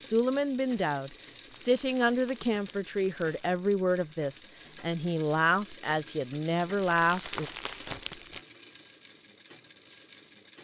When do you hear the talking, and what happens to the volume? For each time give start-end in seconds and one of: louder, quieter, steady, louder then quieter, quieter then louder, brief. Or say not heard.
0.0-7.5 steady.